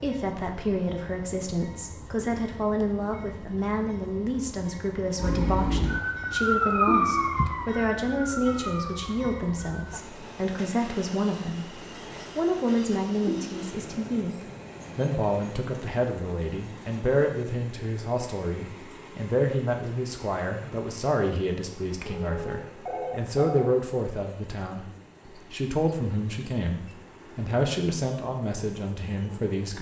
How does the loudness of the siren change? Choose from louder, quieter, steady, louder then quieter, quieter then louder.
louder then quieter.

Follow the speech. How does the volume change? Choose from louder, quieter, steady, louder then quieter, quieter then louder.
steady.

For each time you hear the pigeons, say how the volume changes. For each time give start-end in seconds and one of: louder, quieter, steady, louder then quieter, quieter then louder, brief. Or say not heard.
not heard.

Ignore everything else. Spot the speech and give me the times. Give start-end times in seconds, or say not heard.
0.0-29.7.